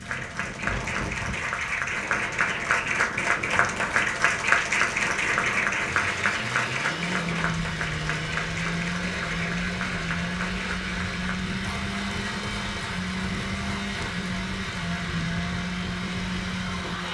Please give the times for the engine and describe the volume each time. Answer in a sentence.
You can hear the engine from 0.0 to 17.0 s, getting louder.